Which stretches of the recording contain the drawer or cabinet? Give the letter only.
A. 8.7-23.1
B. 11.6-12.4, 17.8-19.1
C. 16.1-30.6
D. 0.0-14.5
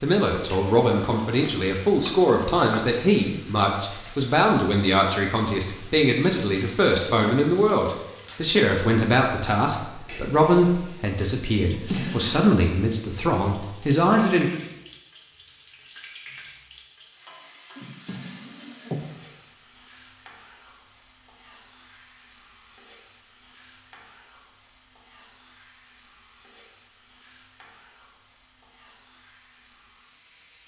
B.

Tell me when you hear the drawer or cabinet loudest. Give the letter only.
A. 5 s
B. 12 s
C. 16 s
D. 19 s
B.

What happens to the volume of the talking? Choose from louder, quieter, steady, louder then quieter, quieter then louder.
steady.